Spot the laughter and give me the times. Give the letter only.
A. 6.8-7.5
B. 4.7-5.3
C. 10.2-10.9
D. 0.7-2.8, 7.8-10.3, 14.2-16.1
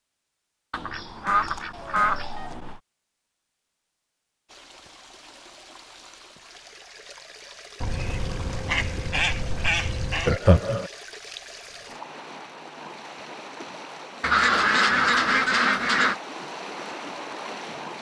C.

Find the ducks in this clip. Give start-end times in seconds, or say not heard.
0.7-2.8, 7.8-10.3, 14.2-16.1.